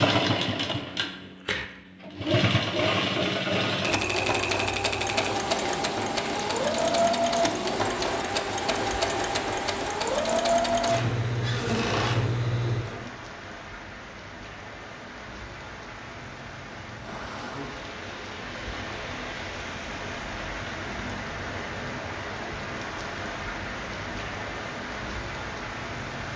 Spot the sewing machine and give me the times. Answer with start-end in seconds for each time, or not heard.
0.0-13.1.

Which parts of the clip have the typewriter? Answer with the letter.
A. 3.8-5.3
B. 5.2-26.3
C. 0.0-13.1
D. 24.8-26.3
A.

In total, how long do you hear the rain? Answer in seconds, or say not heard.
21 s.